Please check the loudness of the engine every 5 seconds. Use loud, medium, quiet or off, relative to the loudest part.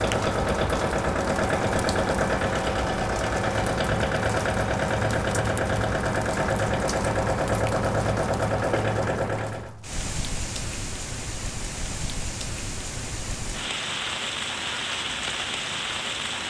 loud, loud, off, off.